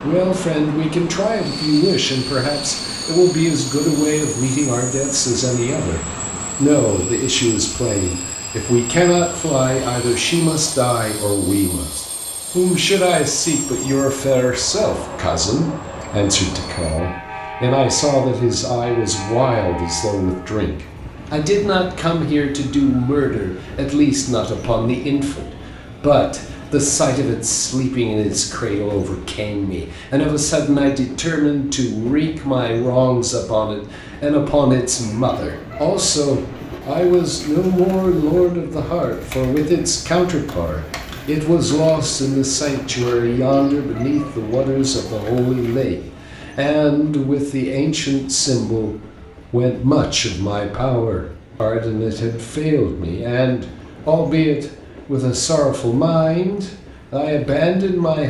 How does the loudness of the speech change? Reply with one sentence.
The volume of the speech stays about the same.